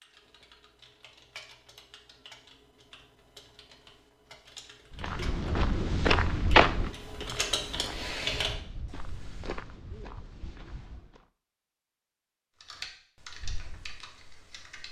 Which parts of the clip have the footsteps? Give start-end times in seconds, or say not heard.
4.9-11.2.